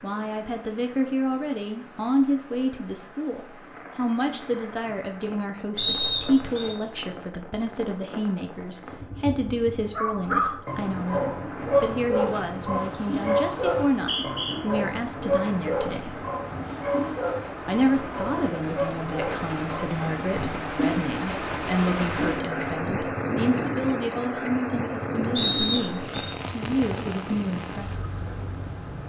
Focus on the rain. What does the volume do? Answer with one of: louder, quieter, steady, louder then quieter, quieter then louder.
louder.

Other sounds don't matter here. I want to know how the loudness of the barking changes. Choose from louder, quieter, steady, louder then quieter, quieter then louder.
quieter.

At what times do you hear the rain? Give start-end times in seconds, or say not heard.
0.0-29.0.